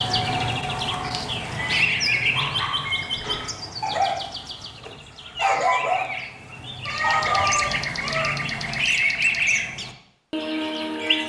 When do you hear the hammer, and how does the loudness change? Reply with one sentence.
The hammer can't be heard in this clip.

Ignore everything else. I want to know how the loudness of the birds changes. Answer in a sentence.
The loudness of the birds goes down, then up.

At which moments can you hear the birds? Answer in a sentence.
The birds can be heard from 0.0 to 11.2 s.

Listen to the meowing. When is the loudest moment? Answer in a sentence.
The loudest moment of the meowing is at 7 seconds.